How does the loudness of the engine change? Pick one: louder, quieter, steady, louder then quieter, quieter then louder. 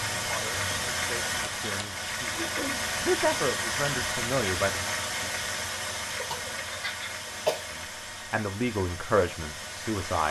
quieter.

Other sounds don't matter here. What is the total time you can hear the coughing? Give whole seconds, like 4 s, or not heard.
2 s.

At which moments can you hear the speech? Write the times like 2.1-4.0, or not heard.
0.2-4.9, 7.7-10.2.